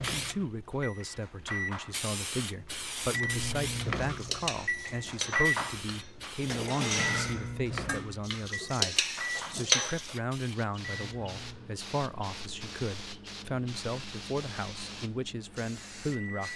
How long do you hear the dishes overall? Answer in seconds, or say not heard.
7 s.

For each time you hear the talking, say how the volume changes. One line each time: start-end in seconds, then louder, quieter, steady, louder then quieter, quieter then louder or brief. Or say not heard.
0.1-16.5 steady.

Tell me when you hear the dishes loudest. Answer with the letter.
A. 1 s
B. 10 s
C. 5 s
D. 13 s
B.